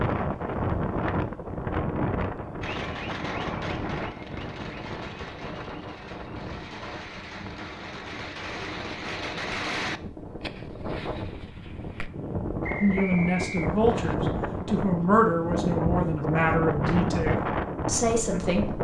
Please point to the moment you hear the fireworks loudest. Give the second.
10 s.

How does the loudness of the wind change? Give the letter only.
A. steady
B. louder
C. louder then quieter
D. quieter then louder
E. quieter
D.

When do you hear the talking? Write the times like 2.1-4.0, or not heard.
12.8-18.7.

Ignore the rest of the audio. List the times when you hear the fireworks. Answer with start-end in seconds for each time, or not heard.
2.6-12.1.